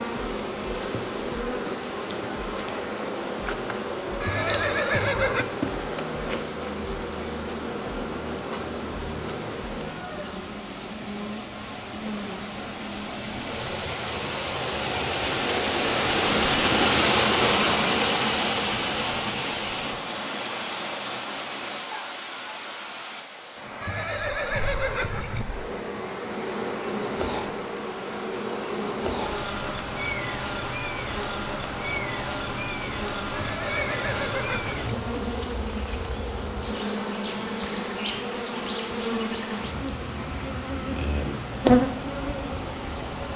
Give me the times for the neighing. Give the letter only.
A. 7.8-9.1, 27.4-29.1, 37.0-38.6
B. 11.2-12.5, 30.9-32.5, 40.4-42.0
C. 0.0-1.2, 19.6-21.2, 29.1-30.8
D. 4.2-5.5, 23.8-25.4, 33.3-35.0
D.